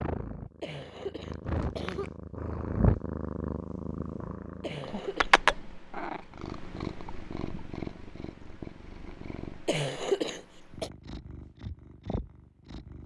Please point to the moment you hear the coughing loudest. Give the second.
10 s.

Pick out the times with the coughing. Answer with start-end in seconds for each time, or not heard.
0.6-2.1, 4.6-5.3, 9.7-10.9.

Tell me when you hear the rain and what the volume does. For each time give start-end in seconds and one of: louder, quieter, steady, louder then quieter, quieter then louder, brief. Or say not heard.
not heard.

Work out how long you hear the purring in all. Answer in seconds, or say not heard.
13 s.